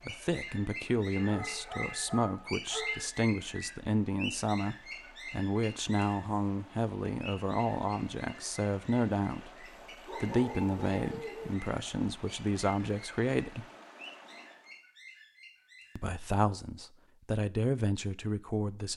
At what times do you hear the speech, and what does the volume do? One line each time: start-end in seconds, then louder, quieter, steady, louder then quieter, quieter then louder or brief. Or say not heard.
0.1-13.7 steady
15.9-18.9 brief.